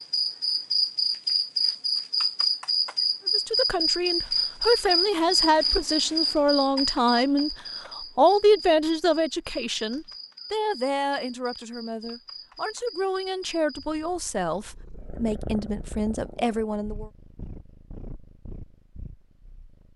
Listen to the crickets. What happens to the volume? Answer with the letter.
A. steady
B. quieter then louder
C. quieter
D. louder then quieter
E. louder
C.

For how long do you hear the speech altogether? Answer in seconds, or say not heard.
14 s.